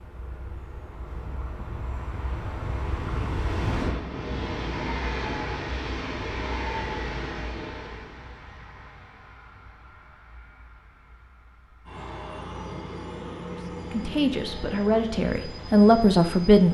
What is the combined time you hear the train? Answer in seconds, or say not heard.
17 s.